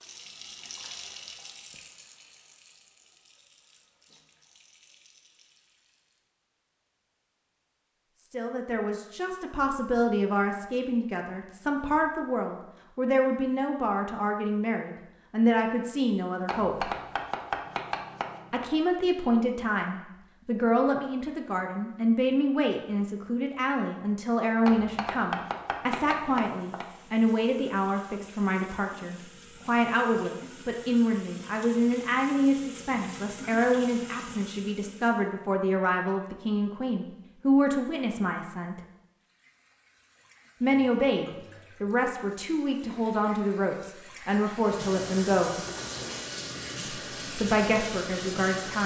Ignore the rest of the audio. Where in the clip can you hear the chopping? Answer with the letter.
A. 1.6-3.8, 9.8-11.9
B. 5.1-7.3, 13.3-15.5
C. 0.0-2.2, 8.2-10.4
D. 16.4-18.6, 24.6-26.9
D.